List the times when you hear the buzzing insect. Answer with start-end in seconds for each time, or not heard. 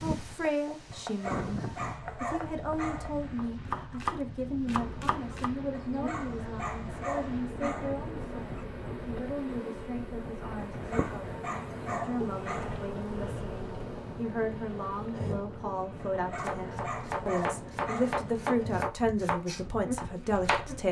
4.7-20.8.